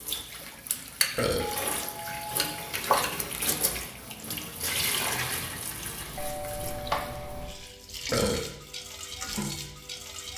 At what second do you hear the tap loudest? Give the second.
3 s.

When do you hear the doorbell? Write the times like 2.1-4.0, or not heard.
1.4-2.8, 6.2-7.6.